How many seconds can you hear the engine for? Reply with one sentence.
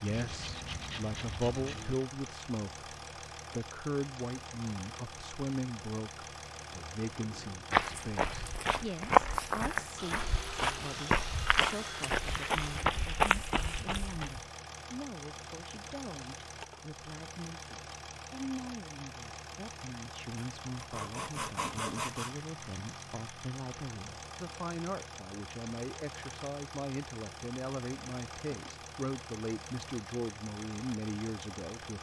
You can hear the engine for 32 seconds altogether.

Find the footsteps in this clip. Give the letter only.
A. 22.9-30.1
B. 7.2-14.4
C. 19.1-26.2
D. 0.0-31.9
B.